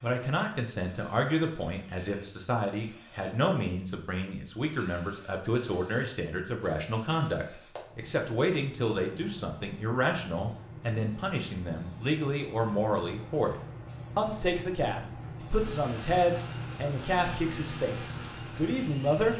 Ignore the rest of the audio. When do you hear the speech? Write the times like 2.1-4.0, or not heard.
0.0-13.6, 14.2-19.3.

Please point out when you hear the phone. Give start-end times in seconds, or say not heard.
not heard.